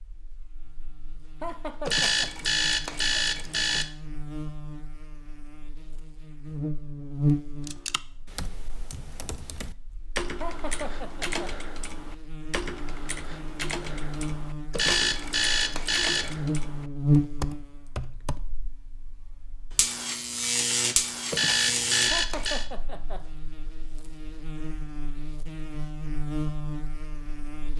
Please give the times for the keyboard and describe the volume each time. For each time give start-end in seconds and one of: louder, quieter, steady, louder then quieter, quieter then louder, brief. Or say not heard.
7.7-18.4 louder.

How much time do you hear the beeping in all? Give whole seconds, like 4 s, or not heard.
5 s.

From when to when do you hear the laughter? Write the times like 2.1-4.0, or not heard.
1.4-2.2, 10.4-11.4, 22.1-23.2.